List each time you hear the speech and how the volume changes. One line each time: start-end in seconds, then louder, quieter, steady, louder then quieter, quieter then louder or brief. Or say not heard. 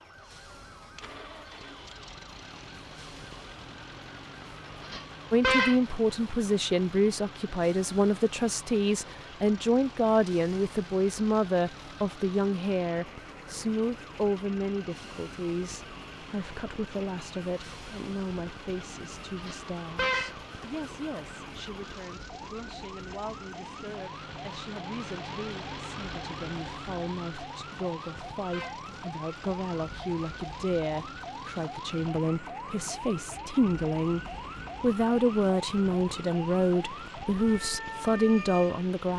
5.3-39.1 quieter then louder.